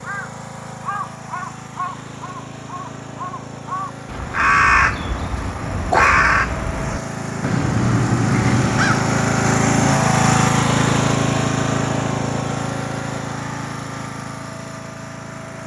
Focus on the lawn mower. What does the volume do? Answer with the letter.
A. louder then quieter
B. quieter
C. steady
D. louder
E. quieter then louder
A.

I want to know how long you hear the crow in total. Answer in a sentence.
You can hear the crow for 9 seconds altogether.